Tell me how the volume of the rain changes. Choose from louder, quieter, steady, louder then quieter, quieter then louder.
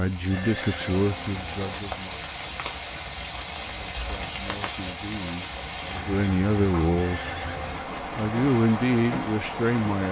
steady.